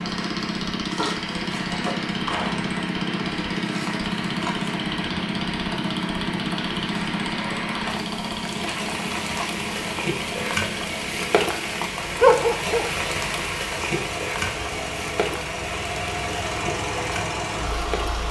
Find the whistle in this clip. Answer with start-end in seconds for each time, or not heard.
not heard.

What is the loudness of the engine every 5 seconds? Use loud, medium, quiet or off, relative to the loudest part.
loud, loud, medium, loud.